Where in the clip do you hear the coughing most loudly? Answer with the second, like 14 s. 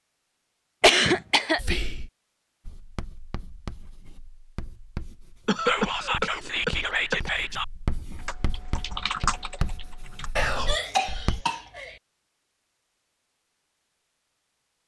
1 s.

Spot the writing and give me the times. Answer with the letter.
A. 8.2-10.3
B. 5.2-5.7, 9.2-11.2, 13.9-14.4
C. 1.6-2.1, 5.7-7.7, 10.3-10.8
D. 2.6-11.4
D.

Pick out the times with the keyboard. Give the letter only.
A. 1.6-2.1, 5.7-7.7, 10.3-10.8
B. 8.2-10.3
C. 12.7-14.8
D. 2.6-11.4
B.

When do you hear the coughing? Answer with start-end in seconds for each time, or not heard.
0.8-1.8, 5.5-7.2, 10.7-11.9.